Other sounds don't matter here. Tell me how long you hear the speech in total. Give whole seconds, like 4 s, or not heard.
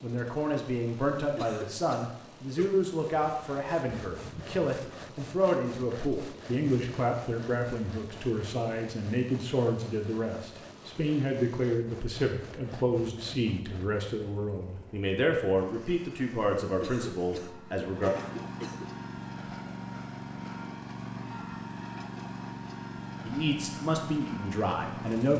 20 s.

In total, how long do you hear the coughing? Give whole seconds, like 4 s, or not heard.
4 s.